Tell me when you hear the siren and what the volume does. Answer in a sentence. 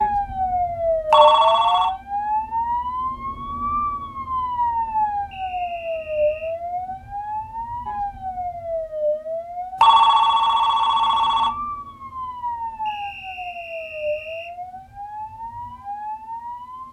The siren can be heard from 0.0 to 16.8 s, getting quieter.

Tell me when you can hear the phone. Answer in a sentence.
The phone can be heard from 1.1 to 1.9 s and from 9.8 to 11.5 s.